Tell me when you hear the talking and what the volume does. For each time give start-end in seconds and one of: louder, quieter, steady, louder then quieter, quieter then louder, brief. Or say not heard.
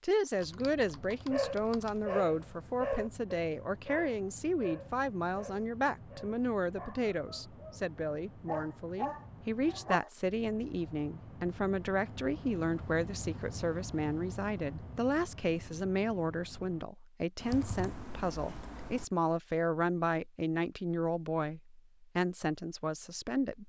0.0-23.6 steady.